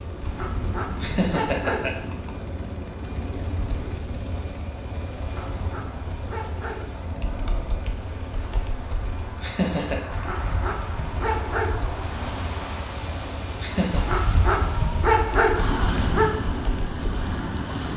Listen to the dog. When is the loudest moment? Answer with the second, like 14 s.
15 s.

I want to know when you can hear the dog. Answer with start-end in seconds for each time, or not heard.
0.2-2.1, 5.2-7.0, 10.1-11.9, 13.9-16.3.